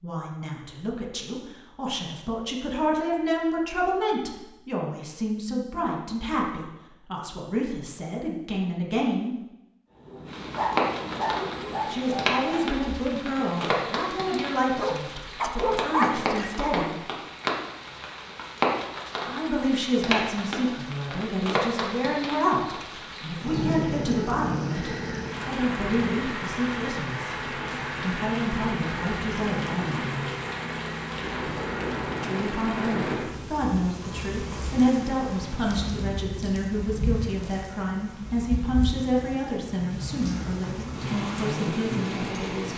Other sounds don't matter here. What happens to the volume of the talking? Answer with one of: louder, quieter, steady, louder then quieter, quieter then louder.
steady.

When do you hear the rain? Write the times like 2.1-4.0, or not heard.
10.2-42.7.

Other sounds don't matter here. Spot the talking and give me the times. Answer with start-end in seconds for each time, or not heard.
0.0-9.3, 11.8-17.0, 19.2-30.3, 32.2-42.7.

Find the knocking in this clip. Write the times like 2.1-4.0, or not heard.
not heard.